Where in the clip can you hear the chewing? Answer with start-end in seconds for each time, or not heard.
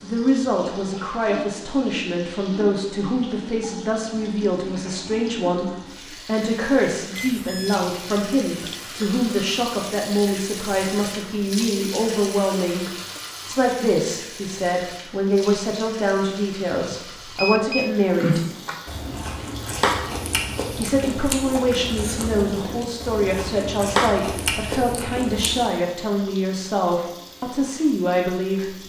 18.1-25.6.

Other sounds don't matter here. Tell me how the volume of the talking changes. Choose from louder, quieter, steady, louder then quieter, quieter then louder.
steady.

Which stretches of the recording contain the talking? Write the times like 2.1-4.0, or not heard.
0.0-12.8, 13.4-18.4, 20.7-28.8.